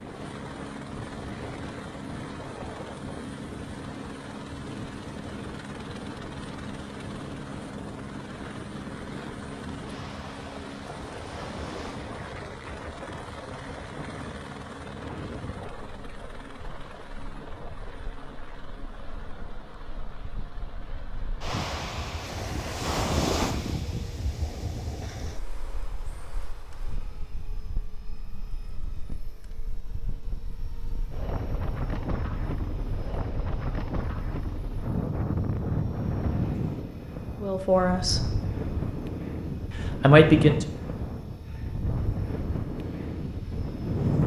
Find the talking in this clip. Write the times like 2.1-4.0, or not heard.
37.4-38.3, 39.8-40.6.